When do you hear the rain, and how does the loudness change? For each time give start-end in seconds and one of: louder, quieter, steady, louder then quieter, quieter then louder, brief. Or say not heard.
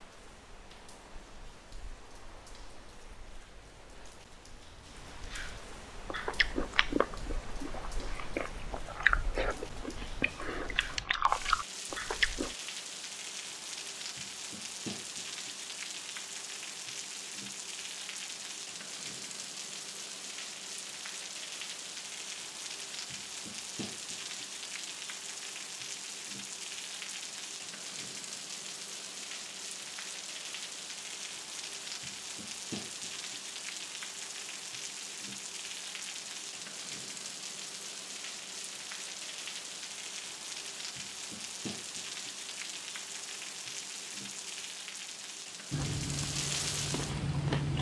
0.0-47.7 louder.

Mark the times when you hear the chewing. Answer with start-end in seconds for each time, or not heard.
6.0-12.6, 45.7-47.7.